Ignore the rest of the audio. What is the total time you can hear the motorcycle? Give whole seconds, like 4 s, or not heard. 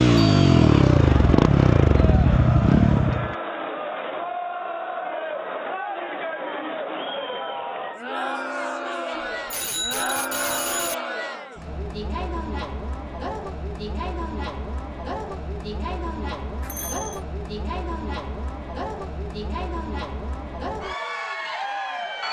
3 s.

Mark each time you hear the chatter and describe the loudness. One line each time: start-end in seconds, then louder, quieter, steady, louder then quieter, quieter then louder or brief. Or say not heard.
0.1-22.2 steady.